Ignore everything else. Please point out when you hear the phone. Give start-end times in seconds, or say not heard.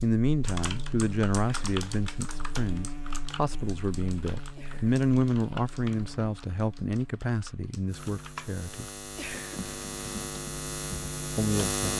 not heard.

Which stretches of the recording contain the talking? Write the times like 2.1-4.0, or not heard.
0.0-8.8, 11.3-11.9.